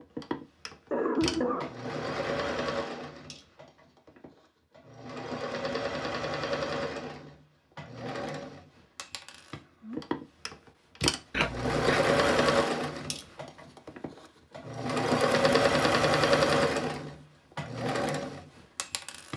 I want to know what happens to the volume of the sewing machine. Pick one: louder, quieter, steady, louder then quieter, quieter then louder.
louder.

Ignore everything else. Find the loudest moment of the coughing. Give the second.
1 s.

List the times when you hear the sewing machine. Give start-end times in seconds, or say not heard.
0.0-19.3.